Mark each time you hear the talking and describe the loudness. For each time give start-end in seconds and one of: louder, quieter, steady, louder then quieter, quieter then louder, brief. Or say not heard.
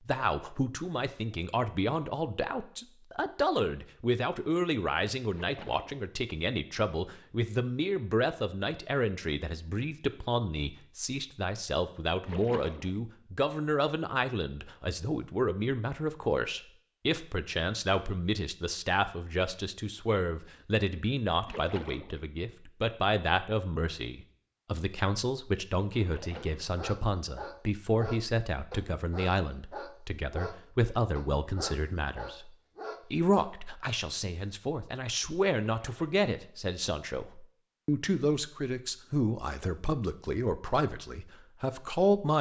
0.1-42.3 steady.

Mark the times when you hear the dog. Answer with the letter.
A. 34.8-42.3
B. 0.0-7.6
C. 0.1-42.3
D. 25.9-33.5
D.